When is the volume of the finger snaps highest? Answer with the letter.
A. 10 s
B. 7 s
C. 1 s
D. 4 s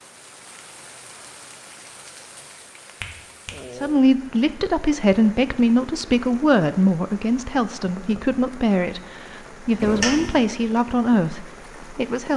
A.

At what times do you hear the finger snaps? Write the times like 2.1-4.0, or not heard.
2.9-3.5, 9.8-10.4.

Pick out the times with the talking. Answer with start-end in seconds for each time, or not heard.
3.7-12.3.